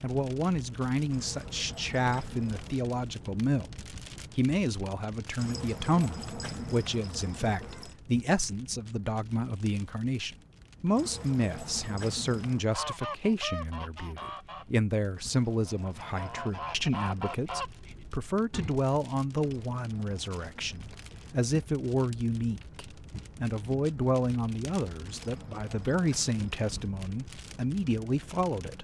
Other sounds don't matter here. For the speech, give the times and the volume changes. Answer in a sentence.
The speech can be heard from 0.0 to 28.7 s, at a steady volume.